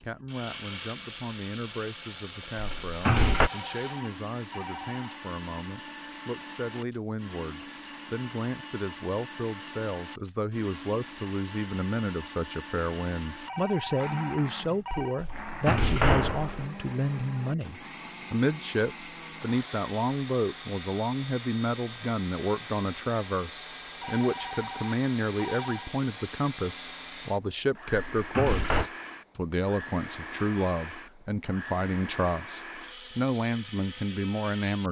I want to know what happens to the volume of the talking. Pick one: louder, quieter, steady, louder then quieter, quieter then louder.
louder.